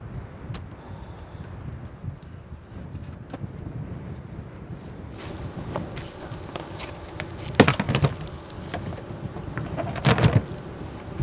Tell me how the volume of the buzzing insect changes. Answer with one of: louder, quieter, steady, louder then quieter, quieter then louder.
louder.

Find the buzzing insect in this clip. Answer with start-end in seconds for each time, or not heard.
0.0-11.1.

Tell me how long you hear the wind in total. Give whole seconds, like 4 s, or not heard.
11 s.